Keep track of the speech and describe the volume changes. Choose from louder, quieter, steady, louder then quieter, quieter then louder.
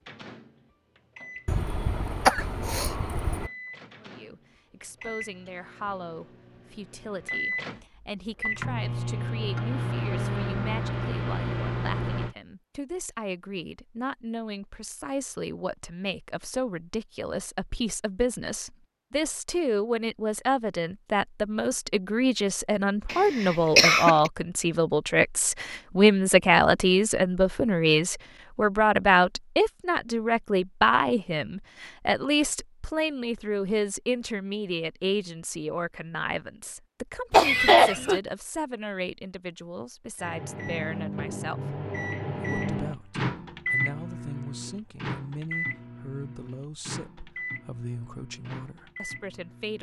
louder then quieter.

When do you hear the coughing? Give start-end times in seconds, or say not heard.
1.4-3.5, 23.1-24.3, 37.3-38.2.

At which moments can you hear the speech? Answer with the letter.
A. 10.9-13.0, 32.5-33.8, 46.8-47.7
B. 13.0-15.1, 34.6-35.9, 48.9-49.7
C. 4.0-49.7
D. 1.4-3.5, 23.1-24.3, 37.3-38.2
C.